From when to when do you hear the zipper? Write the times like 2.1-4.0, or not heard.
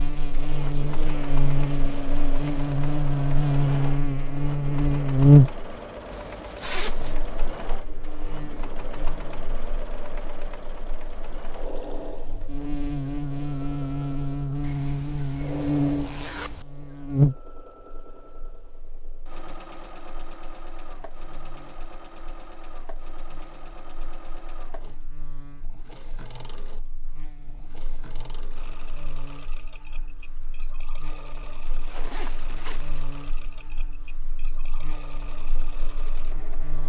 6.1-7.2, 14.6-16.6, 31.6-33.0.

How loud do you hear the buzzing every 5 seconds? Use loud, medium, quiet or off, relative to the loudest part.
medium, loud, medium, medium, quiet, quiet, quiet, quiet.